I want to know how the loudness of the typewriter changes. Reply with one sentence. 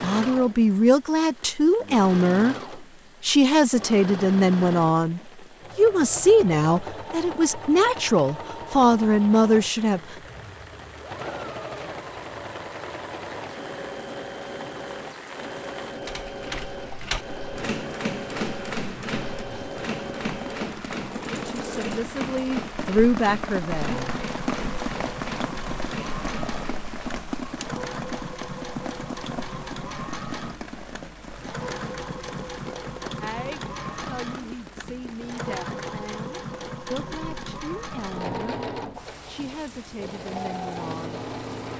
The loudness of the typewriter goes down.